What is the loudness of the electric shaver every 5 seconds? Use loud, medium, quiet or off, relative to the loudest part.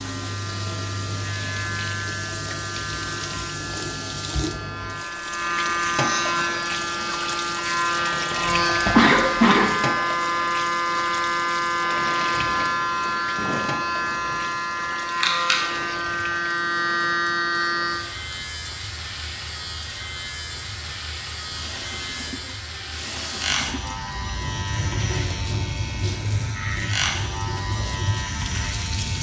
medium, loud, loud, loud, medium, medium.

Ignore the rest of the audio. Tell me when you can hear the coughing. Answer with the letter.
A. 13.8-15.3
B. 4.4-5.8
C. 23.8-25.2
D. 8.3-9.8
D.